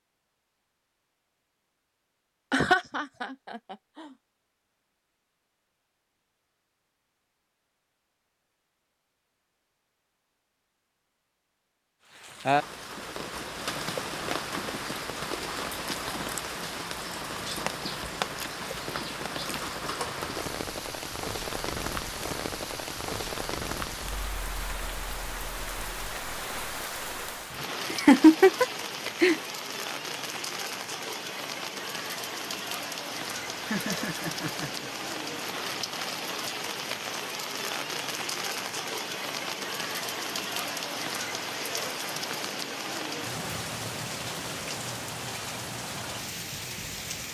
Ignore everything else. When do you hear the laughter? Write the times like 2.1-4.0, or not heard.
2.5-4.1, 27.9-29.4, 33.6-34.9.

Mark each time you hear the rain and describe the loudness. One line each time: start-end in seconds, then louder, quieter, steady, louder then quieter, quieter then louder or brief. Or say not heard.
12.1-47.2 steady.